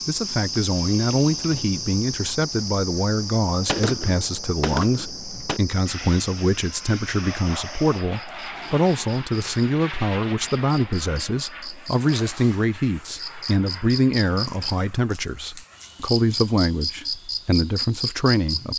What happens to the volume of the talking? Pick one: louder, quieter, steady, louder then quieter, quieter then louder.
steady.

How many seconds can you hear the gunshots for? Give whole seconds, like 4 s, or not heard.
2 s.